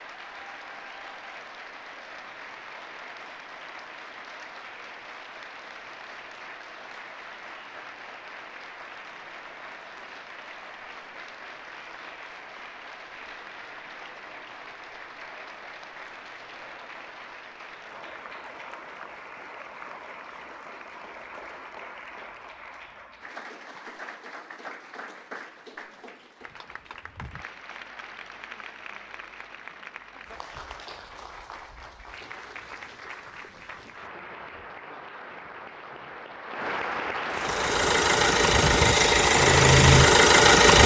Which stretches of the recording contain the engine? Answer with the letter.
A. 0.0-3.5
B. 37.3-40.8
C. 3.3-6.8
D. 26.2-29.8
B.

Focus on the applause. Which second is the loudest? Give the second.
37 s.